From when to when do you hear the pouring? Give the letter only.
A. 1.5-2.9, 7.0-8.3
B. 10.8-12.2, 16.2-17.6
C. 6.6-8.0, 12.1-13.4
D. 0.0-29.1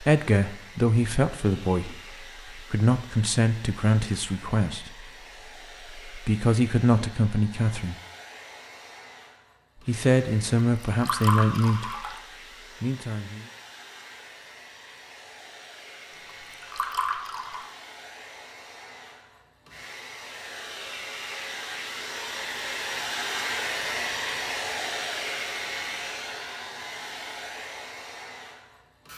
B.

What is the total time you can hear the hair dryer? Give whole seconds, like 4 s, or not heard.
29 s.